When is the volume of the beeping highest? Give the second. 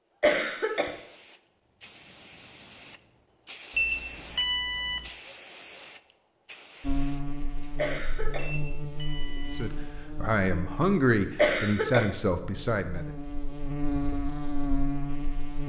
4 s.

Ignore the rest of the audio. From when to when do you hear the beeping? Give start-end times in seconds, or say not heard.
3.8-5.1, 8.3-9.7.